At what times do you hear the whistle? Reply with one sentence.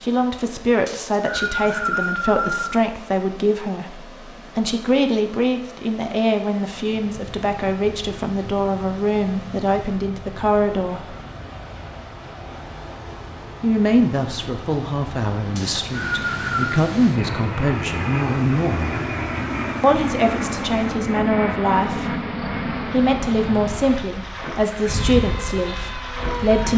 The whistle can be heard from 0.8 to 2.8 s and from 15.6 to 16.8 s.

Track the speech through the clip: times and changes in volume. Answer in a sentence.
You can hear the speech from 0.0 to 11.2 s, at a steady volume; from 13.6 to 18.9 s, getting quieter then louder; and from 19.8 to 26.7 s, at a steady volume.